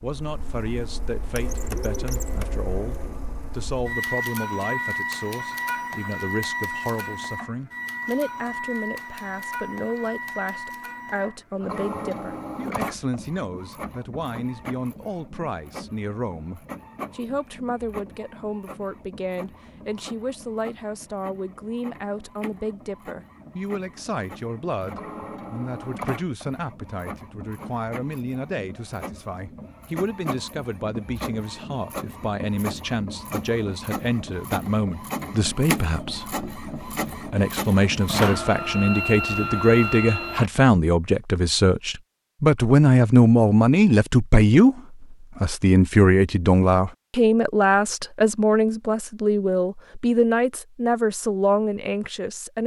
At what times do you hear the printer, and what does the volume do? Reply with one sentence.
You can hear the printer from 0.0 to 40.5 s, getting quieter then louder.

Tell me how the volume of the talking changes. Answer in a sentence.
The volume of the talking goes up.